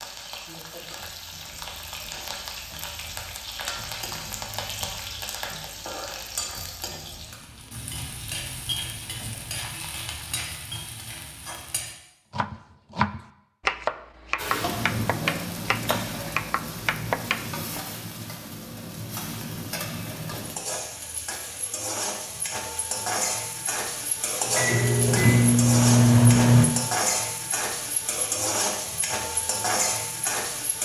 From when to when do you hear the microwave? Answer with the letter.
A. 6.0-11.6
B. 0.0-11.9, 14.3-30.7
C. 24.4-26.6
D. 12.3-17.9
C.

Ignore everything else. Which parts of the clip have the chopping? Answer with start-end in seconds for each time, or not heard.
12.3-17.9.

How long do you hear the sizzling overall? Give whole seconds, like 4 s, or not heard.
28 s.